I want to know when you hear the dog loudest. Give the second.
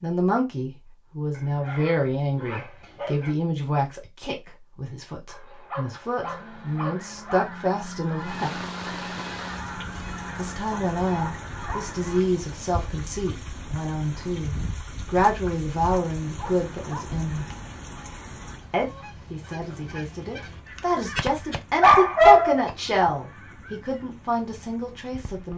22 s.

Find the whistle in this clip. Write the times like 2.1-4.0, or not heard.
not heard.